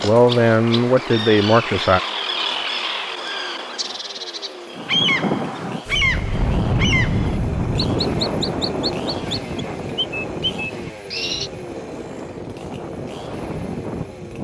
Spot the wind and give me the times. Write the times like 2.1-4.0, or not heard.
4.8-14.3.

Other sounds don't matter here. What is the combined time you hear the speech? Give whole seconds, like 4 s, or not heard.
2 s.